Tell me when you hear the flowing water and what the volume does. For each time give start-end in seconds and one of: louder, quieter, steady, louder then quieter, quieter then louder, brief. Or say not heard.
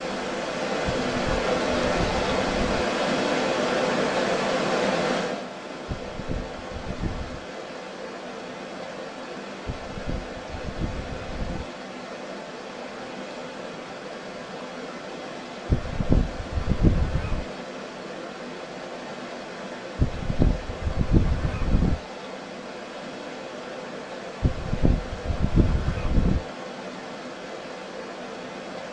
0.0-28.8 quieter.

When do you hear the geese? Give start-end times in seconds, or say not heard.
1.1-2.9, 5.8-7.5, 9.7-11.7, 15.7-17.4, 19.9-22.0, 24.4-26.4.